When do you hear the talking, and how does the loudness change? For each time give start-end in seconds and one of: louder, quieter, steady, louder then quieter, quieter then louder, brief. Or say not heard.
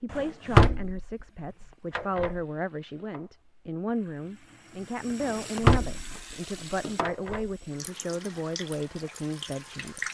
0.0-10.0 steady.